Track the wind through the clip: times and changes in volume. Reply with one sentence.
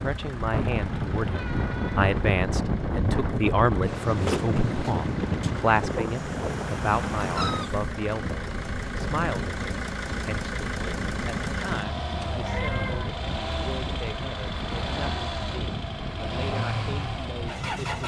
The wind can be heard from 0.0 to 18.0 s, getting quieter.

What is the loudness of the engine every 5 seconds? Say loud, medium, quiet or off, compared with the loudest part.
medium, loud, loud, loud.